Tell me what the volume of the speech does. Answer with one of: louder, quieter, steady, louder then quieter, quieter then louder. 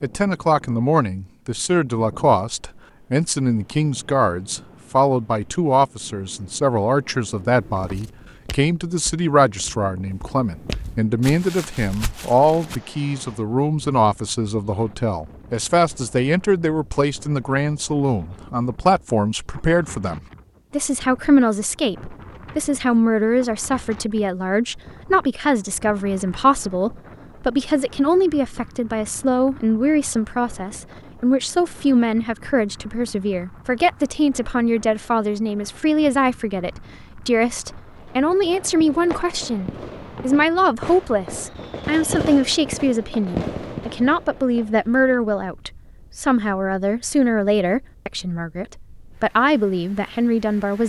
steady.